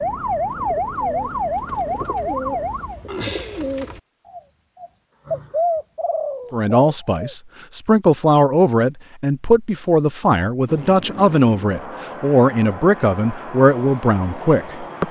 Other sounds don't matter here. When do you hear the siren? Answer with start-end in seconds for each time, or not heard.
0.0-3.0.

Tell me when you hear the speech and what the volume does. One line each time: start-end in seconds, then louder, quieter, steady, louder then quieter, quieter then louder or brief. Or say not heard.
6.5-15.0 steady.